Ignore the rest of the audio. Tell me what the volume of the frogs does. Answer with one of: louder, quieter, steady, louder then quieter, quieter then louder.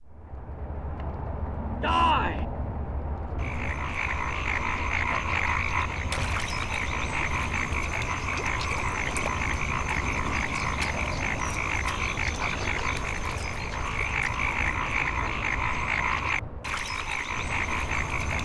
steady.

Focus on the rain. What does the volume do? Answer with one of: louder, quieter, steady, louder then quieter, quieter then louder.
steady.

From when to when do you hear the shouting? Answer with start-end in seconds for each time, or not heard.
1.8-2.5.